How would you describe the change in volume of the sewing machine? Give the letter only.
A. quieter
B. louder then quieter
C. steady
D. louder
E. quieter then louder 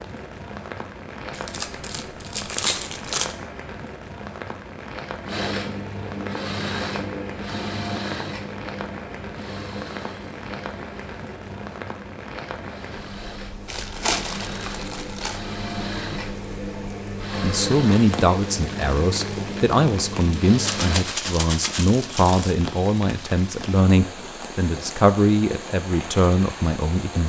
E.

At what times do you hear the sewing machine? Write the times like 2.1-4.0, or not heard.
5.2-21.1.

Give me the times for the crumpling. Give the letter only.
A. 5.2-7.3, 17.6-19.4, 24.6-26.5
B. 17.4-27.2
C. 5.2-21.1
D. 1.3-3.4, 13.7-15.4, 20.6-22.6
D.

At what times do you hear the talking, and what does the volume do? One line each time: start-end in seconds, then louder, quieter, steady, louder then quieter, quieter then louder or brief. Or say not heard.
17.4-27.2 steady.